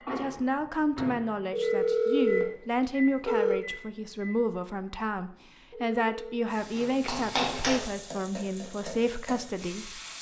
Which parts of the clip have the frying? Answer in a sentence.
The frying can be heard from 6.5 to 10.1 s.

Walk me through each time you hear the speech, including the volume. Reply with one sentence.
You can hear the speech from 0.1 to 10.0 s, at a steady volume.